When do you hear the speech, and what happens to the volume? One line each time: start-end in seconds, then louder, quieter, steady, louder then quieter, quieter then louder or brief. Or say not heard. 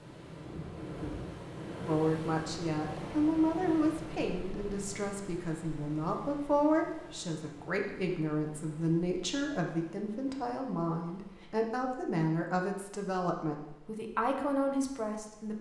1.9-15.5 steady.